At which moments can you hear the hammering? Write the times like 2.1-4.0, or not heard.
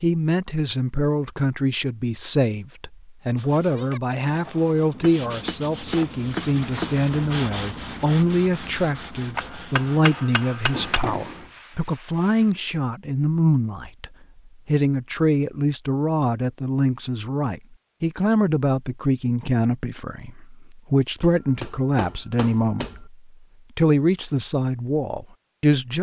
5.0-6.9, 9.3-11.0, 21.2-23.0.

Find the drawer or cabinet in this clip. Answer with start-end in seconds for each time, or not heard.
10.7-11.5.